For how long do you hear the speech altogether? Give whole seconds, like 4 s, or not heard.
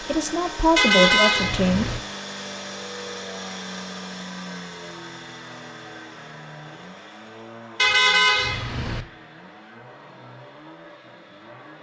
2 s.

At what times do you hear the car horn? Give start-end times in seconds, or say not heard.
0.8-2.0, 7.8-9.1.